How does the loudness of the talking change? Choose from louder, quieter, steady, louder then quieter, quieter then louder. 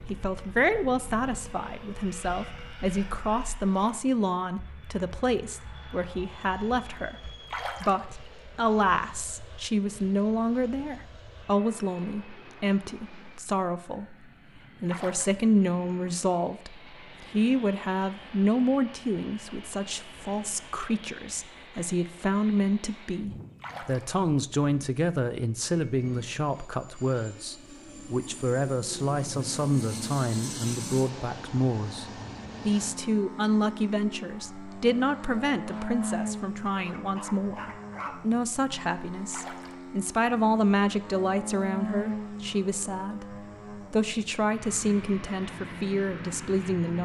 steady.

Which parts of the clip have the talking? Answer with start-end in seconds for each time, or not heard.
0.1-14.2, 14.8-47.0.